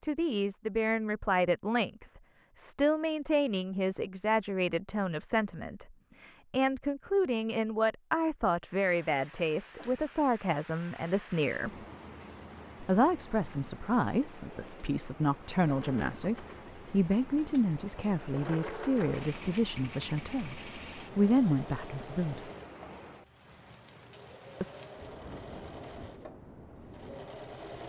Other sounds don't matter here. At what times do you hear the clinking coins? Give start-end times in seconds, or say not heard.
not heard.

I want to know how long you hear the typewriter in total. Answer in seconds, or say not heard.
not heard.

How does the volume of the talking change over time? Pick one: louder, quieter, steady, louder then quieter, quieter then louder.
steady.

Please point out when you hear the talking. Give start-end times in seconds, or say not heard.
0.0-11.7, 12.8-22.5.